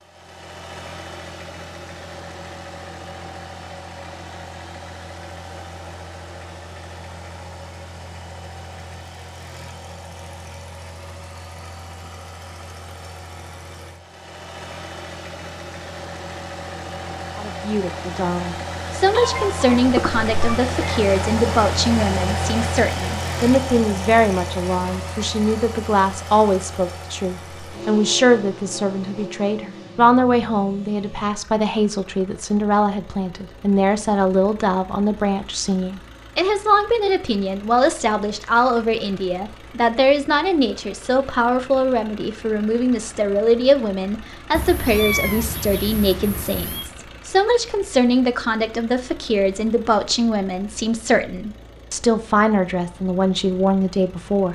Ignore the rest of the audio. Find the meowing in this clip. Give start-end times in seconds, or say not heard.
19.1-21.0, 44.5-46.9.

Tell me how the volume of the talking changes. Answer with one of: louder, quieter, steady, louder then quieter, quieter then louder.
steady.